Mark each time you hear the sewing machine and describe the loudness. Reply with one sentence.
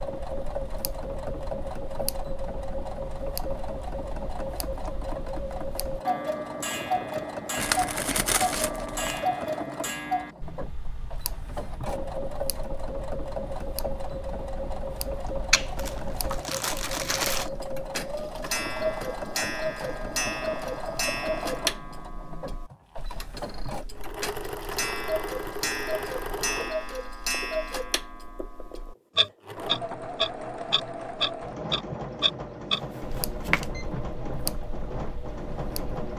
You can hear the sewing machine from 0.0 to 36.1 s, at a steady volume.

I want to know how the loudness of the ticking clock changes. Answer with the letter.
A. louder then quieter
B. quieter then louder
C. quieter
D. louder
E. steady
D.